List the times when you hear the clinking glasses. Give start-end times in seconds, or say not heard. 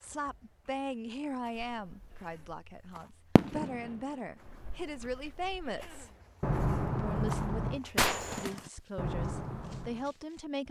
not heard.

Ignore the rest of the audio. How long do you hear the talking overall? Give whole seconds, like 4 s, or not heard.
10 s.